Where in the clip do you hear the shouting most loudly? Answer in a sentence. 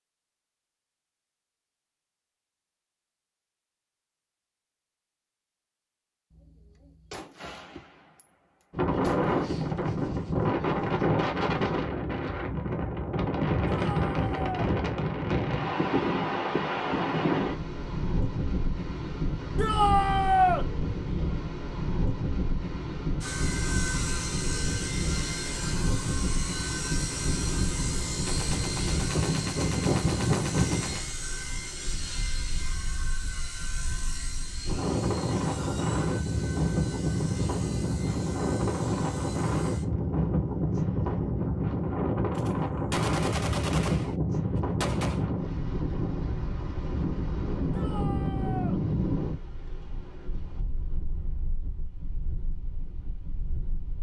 The loudest moment of the shouting is at 20 seconds.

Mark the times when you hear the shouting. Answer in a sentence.
The shouting can be heard from 13.7 to 14.7 s, from 19.6 to 20.6 s and from 47.7 to 48.8 s.